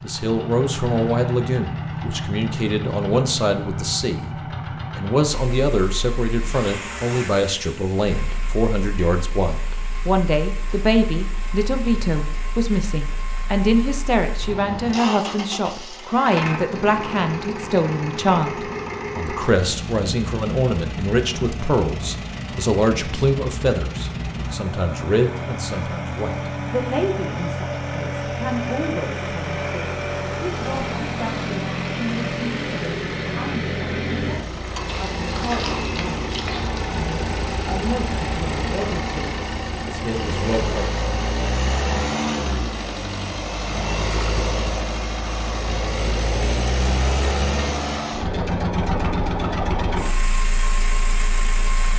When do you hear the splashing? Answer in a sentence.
You can hear the splashing from 34.9 to 36.8 s.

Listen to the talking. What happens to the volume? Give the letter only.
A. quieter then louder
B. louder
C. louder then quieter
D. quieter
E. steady
D.